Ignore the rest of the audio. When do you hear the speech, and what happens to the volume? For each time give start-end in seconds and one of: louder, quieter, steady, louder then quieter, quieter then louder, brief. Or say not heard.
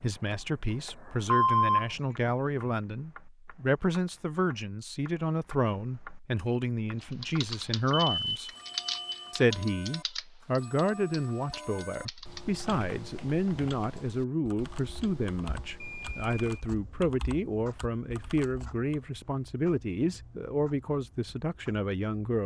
0.0-8.5 steady
9.3-22.4 steady.